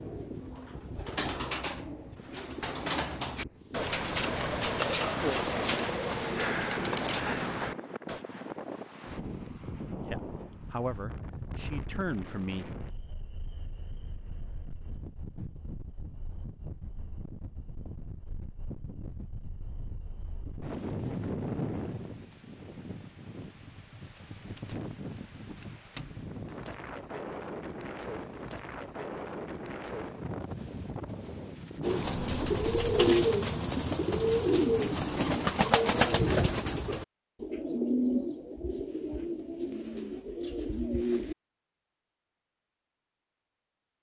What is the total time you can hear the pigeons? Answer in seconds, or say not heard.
18 s.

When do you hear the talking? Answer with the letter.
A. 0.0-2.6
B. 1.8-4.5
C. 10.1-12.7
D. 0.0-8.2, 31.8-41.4
C.